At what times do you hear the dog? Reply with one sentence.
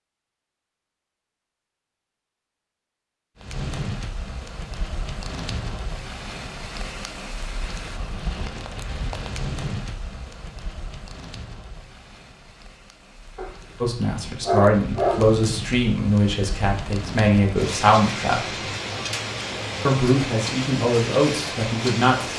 The dog can be heard from 13.3 to 15.3 s.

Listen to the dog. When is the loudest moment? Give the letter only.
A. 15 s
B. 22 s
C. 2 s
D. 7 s
A.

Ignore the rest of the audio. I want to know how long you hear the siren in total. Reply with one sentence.
The siren can't be heard in this clip.